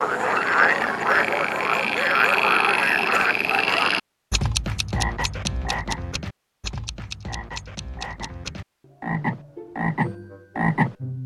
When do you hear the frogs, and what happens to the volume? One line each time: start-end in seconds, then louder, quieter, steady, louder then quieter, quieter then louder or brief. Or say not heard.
0.0-11.2 quieter then louder.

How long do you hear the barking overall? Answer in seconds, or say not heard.
4 s.